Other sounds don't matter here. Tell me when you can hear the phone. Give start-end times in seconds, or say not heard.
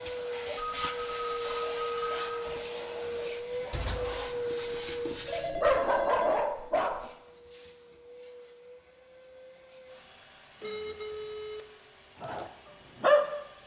0.6-2.1, 5.2-6.3, 10.6-11.7.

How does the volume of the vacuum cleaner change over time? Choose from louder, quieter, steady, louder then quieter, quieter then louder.
quieter.